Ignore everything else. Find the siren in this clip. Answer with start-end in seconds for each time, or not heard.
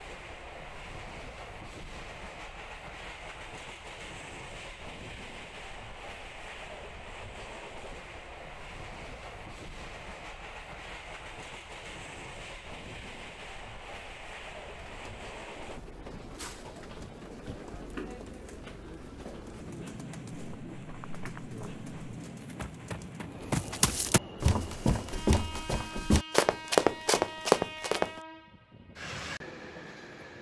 not heard.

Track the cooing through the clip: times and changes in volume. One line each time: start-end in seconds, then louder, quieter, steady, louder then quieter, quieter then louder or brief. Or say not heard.
14.7-23.2 steady.